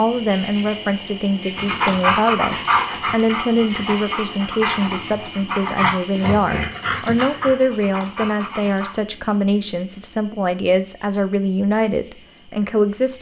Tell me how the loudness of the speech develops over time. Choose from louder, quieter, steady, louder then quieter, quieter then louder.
steady.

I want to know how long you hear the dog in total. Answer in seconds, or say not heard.
7 s.